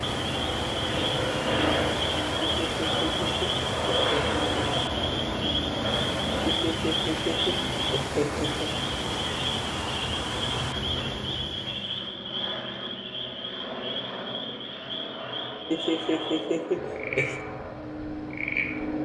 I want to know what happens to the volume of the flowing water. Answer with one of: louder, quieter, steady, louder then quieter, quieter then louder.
steady.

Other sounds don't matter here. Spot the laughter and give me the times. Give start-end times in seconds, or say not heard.
2.4-4.8, 6.5-8.7, 15.7-17.4.